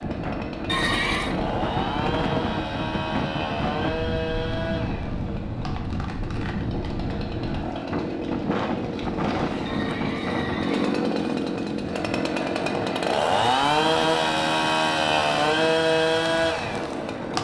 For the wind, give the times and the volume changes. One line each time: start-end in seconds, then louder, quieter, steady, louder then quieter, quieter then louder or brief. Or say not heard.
0.0-17.3 quieter.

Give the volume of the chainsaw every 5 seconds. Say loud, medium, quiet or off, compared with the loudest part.
medium, medium, loud, loud.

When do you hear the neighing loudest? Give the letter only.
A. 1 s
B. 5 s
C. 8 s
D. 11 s
A.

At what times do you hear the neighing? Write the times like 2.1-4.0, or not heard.
0.7-1.4, 9.7-11.6.